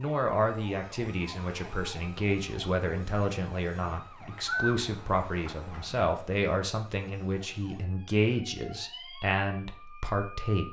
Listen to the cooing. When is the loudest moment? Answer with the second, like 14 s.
5 s.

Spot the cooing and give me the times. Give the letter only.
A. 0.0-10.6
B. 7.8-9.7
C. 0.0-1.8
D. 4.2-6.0
D.